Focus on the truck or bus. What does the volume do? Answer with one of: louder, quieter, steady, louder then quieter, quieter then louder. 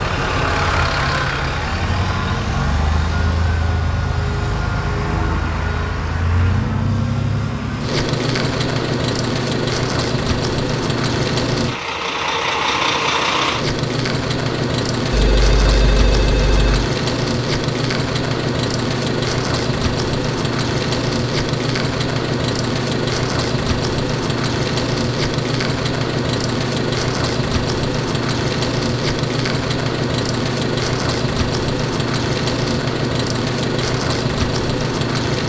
steady.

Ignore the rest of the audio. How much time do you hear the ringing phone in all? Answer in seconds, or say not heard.
2 s.